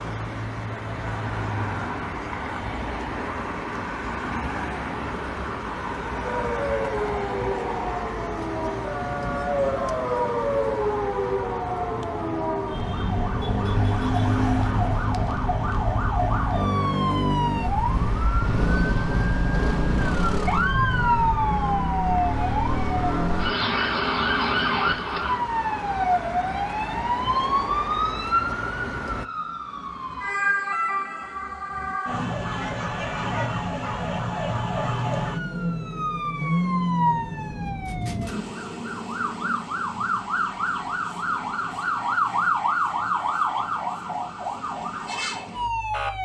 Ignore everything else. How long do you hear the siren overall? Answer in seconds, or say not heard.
40 s.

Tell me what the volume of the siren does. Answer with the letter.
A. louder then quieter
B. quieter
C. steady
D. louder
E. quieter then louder
C.